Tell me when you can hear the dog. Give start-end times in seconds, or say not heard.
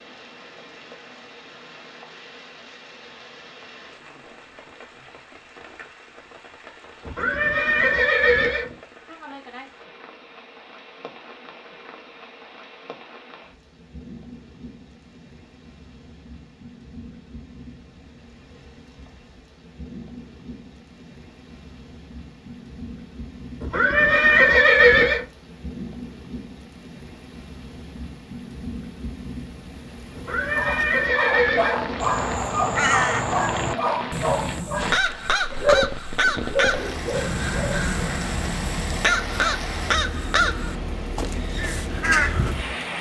30.5-37.9.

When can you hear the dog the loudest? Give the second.
36 s.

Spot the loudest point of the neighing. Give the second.
25 s.